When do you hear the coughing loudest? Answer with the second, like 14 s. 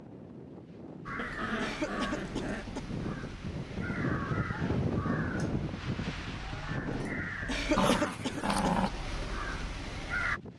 8 s.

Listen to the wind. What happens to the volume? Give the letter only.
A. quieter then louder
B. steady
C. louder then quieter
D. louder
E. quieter
C.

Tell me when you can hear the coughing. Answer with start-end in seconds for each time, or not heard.
1.6-2.9, 7.5-8.8.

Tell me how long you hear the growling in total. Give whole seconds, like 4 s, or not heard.
3 s.